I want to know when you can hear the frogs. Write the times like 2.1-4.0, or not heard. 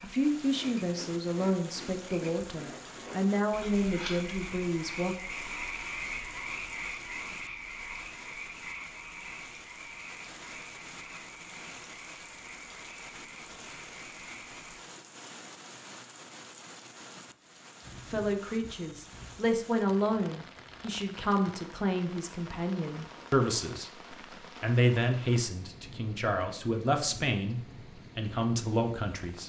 0.0-14.8.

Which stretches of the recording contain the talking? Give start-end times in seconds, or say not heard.
0.0-5.2, 18.1-29.4.